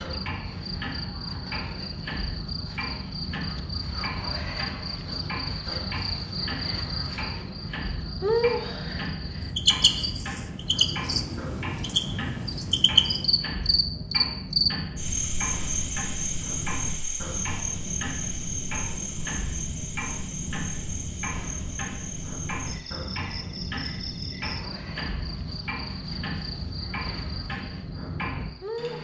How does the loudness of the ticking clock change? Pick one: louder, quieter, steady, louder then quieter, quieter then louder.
steady.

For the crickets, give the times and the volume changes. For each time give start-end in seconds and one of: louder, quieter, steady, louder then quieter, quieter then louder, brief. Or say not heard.
0.0-28.9 louder then quieter.